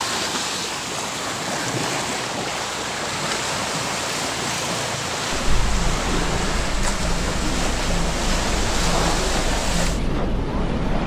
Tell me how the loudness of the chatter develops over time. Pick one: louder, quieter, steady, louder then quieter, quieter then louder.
steady.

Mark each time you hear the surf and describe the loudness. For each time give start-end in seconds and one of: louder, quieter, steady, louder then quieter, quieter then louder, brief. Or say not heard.
0.0-11.0 steady.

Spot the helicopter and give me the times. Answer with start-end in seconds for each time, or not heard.
not heard.